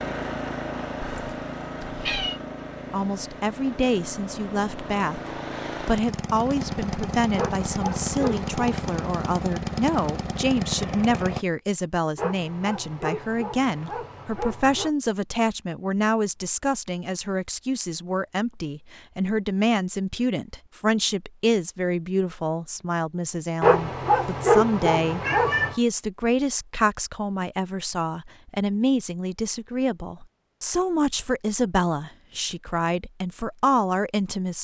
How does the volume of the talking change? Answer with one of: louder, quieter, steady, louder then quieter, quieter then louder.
steady.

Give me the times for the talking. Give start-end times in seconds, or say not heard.
2.9-34.5.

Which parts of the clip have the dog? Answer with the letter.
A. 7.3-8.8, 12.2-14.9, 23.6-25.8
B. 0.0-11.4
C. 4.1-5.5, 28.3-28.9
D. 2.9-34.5
A.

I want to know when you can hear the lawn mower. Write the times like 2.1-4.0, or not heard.
0.0-11.4.